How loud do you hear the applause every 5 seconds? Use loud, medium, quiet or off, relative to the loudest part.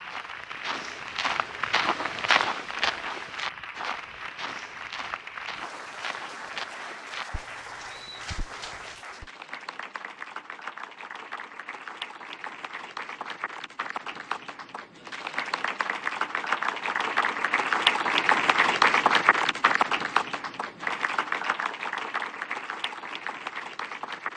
quiet, quiet, quiet, loud, medium.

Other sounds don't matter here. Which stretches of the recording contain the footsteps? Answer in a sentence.
The footsteps can be heard from 0.1 to 9.3 s.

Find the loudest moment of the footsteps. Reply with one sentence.
The loudest moment of the footsteps is at 2 seconds.